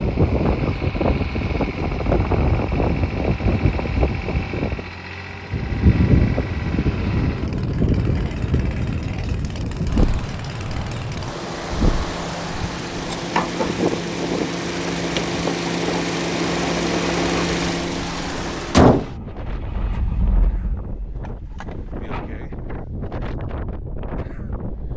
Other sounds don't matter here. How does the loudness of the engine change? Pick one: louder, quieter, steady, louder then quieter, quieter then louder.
louder.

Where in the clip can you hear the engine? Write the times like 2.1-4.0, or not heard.
0.0-22.4.